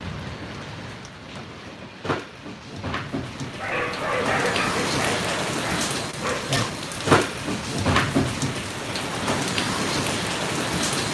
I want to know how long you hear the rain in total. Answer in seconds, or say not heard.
11 s.